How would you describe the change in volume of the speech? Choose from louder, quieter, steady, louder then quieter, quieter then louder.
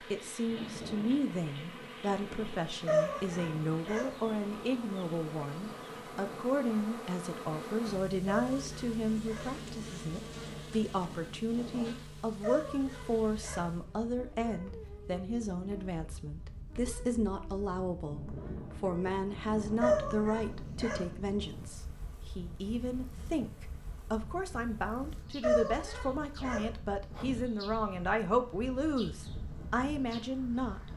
steady.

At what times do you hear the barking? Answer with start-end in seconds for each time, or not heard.
2.9-4.2, 8.2-9.6, 12.4-13.7, 19.8-21.1, 25.4-26.7.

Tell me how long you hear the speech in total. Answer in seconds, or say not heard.
31 s.